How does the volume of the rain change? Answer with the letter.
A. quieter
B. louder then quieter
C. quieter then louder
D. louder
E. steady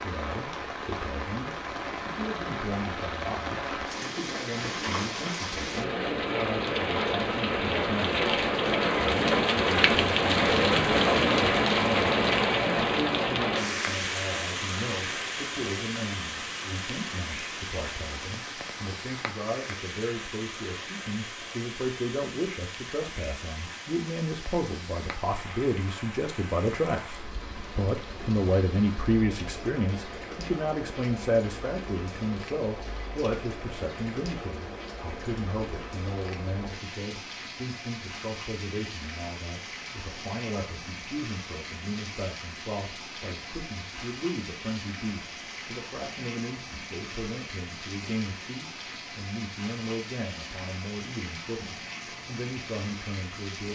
A.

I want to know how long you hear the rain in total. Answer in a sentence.
The rain can be heard for 54 seconds in total.